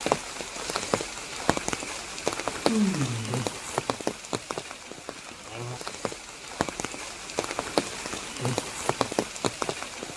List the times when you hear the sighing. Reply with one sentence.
The sighing can be heard from 2.6 to 3.5 s.